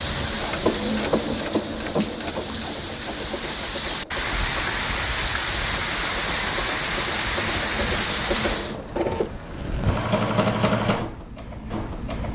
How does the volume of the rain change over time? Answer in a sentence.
The volume of the rain goes up.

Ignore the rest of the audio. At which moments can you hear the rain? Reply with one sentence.
The rain can be heard from 0.0 to 8.8 s.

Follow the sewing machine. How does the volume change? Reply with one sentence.
The volume of the sewing machine goes down, then up.